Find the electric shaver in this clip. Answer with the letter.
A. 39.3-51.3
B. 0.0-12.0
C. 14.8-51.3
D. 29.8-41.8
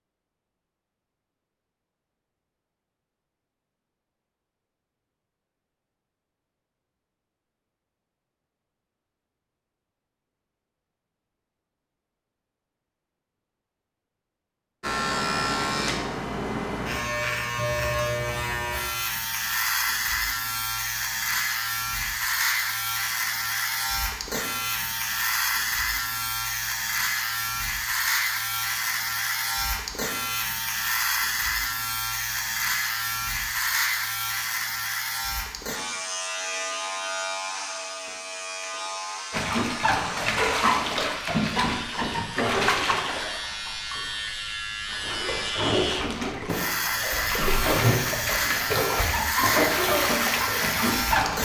C.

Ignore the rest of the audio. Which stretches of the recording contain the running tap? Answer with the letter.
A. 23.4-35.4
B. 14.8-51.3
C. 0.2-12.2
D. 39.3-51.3
D.